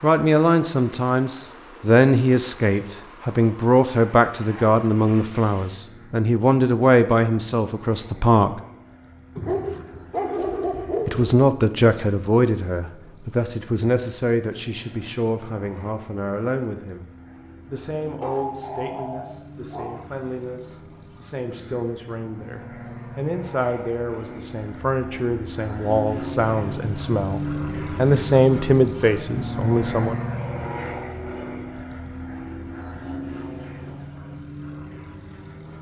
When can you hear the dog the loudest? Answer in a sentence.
The loudest moment of the dog is at 10 seconds.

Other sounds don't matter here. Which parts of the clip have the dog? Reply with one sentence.
The dog can be heard from 9.3 to 11.3 s and from 18.2 to 20.1 s.